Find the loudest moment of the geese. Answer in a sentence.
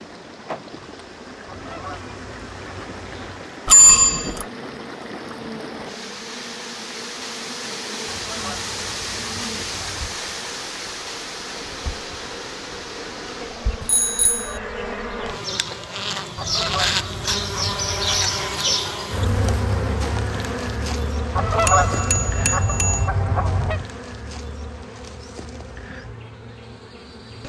The loudest moment of the geese is at 22 seconds.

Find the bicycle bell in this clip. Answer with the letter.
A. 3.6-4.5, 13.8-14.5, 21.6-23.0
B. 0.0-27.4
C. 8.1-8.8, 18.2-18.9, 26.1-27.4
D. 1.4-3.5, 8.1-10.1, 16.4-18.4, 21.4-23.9
A.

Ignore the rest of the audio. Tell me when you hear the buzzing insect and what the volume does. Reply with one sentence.
The buzzing insect can be heard from 0.0 to 27.4 s, getting louder then quieter.